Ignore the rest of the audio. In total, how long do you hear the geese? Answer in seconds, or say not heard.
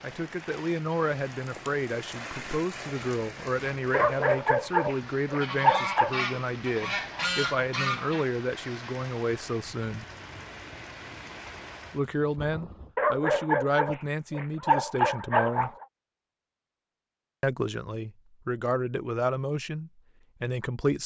3 s.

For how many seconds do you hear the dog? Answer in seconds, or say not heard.
5 s.